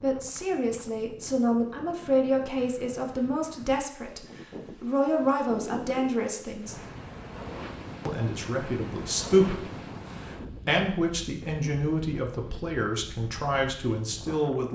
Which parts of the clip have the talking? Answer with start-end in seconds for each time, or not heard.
0.0-6.8, 8.1-14.7.